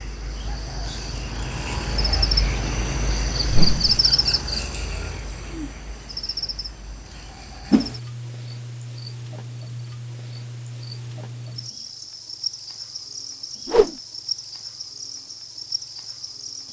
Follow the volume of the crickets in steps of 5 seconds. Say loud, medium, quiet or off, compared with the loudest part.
loud, medium, medium, medium.